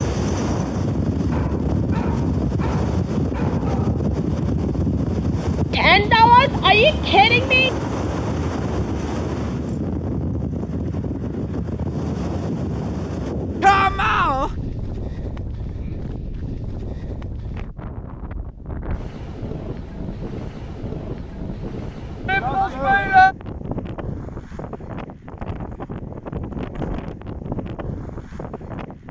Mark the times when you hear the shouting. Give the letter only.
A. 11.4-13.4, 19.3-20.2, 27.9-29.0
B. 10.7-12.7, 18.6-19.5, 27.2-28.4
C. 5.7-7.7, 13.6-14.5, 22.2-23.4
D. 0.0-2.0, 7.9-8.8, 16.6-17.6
C.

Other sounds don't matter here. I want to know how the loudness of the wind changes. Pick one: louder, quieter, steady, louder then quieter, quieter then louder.
quieter.